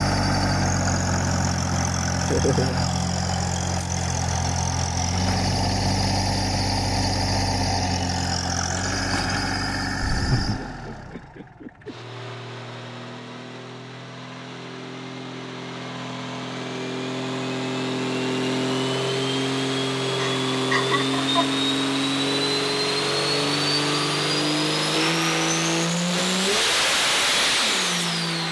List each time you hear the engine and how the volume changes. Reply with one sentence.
The engine can be heard from 0.0 to 28.4 s, getting quieter then louder.